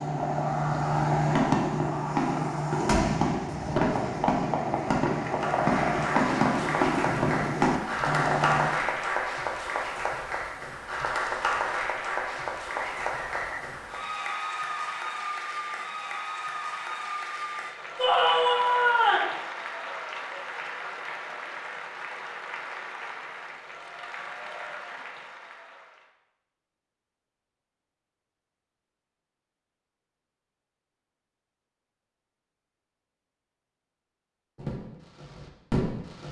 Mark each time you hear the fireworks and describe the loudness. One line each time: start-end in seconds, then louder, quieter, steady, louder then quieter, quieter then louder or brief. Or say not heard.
0.0-8.7 steady
34.5-36.2 brief.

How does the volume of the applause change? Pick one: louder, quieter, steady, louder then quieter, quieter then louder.
quieter.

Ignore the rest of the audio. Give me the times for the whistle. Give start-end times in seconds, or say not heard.
12.8-13.7.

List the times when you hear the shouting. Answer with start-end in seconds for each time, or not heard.
17.9-19.3.